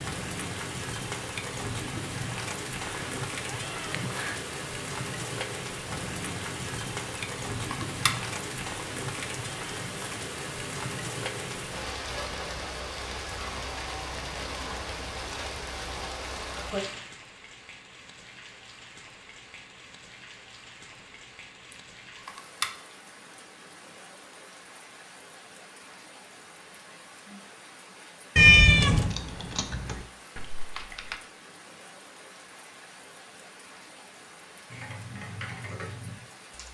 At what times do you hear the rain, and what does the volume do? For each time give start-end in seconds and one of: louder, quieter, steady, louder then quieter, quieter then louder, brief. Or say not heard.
0.0-36.6 quieter.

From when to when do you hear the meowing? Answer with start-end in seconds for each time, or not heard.
2.8-4.4, 28.4-29.1.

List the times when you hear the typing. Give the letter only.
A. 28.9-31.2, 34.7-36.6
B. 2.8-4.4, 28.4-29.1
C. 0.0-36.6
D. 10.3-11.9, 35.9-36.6
A.